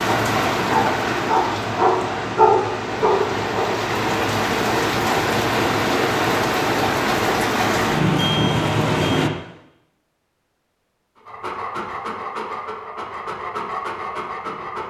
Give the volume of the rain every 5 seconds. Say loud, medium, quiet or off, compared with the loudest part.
loud, loud, off.